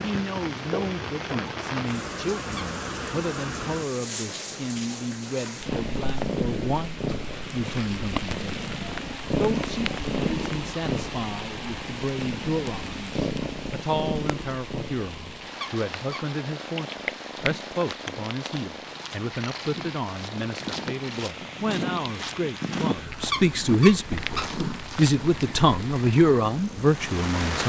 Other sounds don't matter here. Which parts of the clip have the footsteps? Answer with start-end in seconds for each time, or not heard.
17.3-25.6.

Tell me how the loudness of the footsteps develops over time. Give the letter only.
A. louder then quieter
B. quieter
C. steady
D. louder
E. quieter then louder
D.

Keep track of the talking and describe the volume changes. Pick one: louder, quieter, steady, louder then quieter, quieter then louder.
louder.